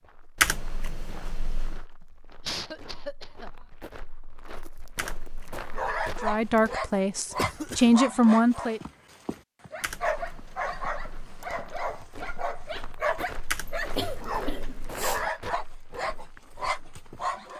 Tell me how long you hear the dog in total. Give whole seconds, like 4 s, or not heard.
12 s.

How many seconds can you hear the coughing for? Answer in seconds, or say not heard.
3 s.